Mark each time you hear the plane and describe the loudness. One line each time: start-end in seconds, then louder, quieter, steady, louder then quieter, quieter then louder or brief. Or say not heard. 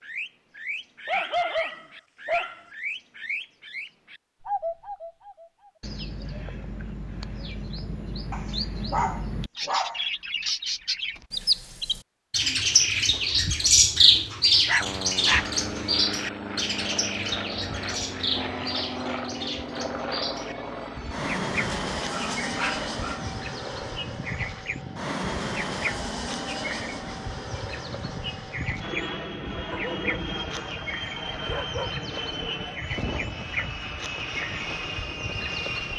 14.8-35.9 steady.